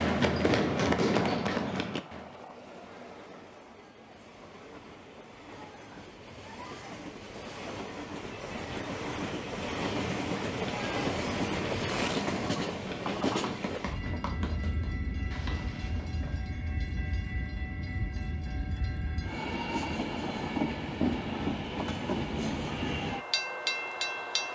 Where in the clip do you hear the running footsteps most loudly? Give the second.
1 s.